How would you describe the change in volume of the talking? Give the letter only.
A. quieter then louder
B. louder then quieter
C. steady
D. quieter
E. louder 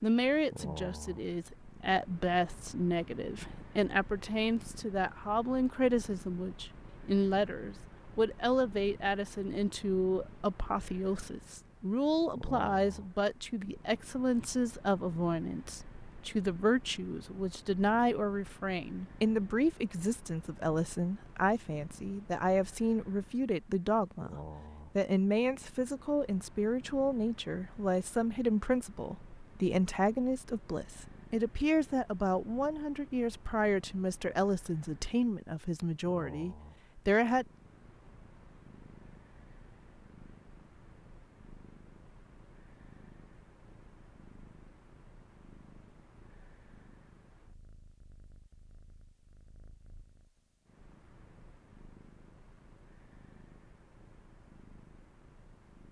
C.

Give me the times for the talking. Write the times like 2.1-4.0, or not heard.
0.0-37.5.